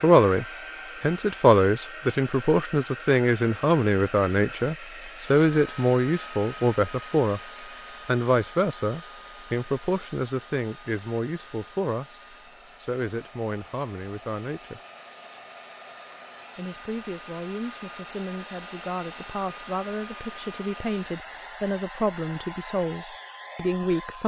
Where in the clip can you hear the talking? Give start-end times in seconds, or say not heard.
0.0-14.8, 16.6-24.2.